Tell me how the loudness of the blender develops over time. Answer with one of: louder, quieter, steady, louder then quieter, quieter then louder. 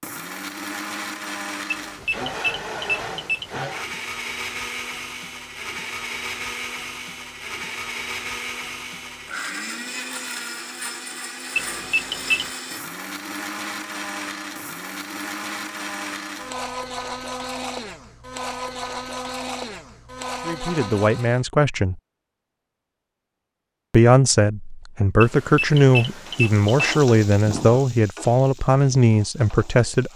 steady.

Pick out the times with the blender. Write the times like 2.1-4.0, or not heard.
0.0-21.4.